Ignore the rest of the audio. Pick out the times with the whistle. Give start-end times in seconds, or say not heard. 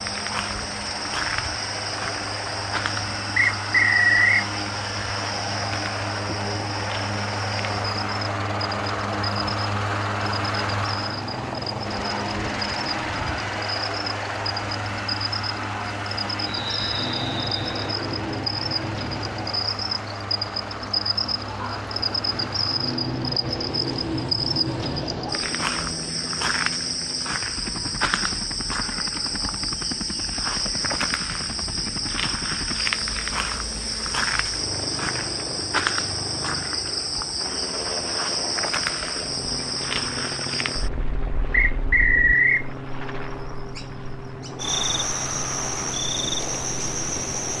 3.4-4.5, 16.4-17.9, 41.5-42.6.